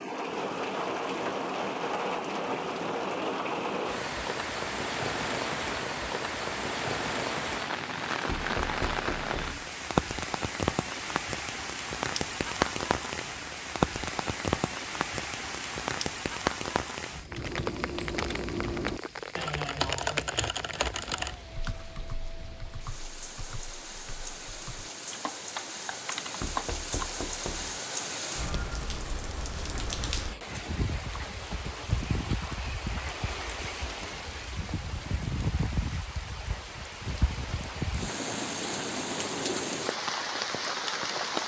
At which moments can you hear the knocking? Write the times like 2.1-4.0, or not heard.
8.2-9.6, 26.4-27.8.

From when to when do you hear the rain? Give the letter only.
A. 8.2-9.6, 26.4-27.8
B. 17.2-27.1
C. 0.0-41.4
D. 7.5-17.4
C.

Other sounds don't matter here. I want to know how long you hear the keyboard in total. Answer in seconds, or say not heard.
10 s.